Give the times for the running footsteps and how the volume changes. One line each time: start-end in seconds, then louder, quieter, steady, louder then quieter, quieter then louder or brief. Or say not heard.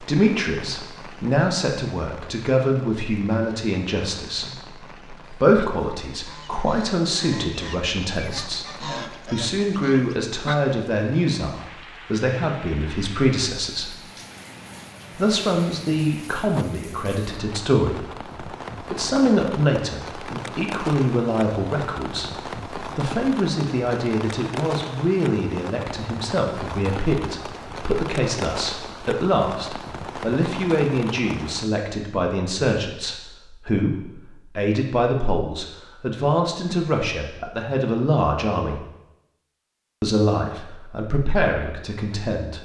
not heard.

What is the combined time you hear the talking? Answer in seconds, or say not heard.
40 s.